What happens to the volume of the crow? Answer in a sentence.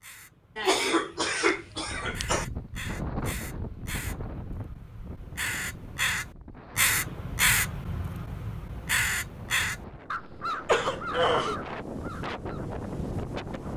The volume of the crow goes up, then down.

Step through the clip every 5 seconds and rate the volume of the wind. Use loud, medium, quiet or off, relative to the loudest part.
loud, medium, loud.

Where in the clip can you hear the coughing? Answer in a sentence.
You can hear the coughing from 0.6 to 2.5 s and from 10.6 to 11.6 s.